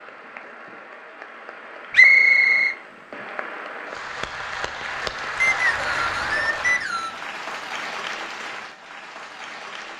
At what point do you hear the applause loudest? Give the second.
6 s.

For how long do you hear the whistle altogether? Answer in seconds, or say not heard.
3 s.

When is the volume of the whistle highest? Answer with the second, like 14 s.
2 s.